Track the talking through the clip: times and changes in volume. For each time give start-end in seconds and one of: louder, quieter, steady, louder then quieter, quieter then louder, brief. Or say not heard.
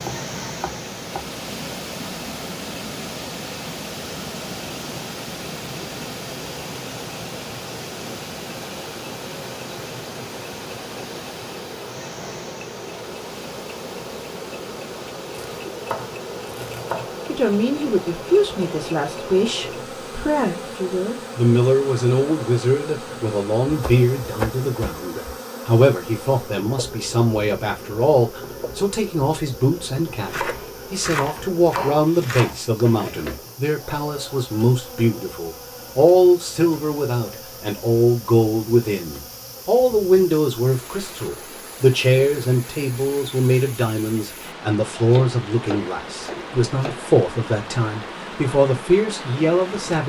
17.2-50.0 steady.